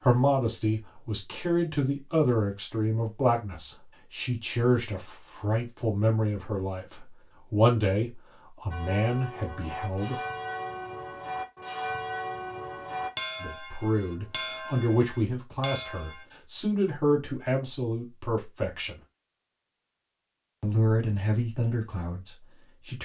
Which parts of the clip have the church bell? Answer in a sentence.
The church bell can be heard from 8.7 to 16.2 s.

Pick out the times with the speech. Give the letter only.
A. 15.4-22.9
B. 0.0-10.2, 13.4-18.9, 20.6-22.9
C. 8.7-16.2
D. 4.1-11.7
B.